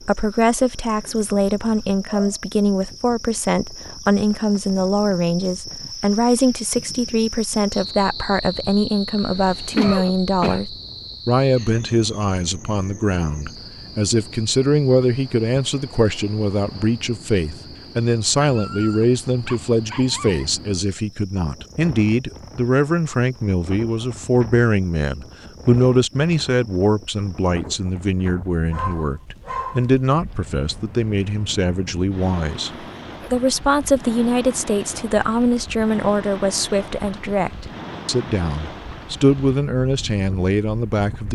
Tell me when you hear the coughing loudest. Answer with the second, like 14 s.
10 s.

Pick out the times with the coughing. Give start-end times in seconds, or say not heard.
9.2-10.6, 32.8-33.4.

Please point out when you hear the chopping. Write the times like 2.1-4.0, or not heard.
not heard.